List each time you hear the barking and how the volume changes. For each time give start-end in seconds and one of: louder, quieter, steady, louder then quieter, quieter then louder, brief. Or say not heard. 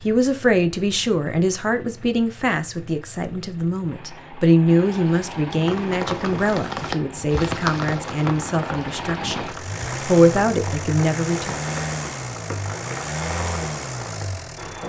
not heard.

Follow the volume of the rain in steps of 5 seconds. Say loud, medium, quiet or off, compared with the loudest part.
off, loud, medium.